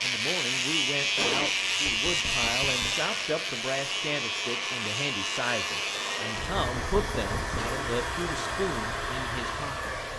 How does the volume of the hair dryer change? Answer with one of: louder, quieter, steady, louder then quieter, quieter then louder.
louder.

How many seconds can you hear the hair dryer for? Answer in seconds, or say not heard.
10 s.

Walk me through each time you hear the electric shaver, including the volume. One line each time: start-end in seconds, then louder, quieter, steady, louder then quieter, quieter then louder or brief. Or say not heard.
0.0-10.1 quieter.